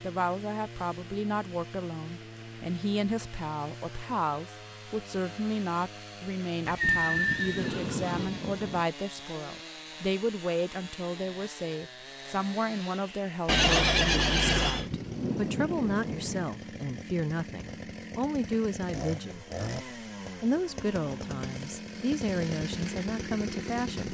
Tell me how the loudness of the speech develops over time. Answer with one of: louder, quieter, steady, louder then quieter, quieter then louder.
steady.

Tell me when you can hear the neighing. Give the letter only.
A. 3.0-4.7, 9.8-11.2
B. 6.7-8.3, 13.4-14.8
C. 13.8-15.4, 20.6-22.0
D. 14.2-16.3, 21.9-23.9
B.